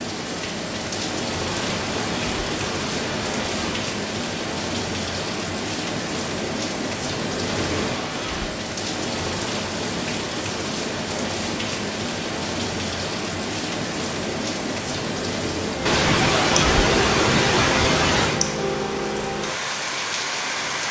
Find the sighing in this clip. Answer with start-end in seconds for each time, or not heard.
1.5-3.9, 7.7-8.6, 15.8-18.4.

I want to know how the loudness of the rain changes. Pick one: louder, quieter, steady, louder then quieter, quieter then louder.
steady.